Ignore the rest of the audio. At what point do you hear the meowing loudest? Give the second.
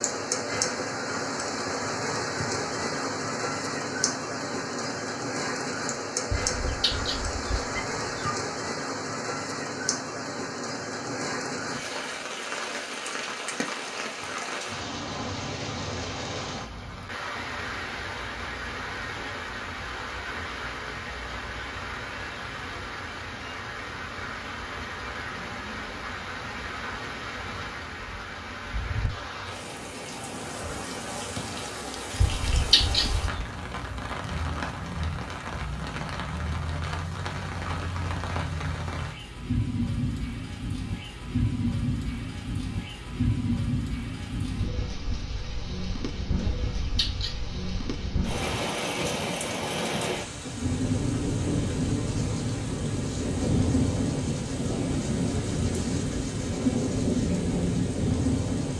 33 s.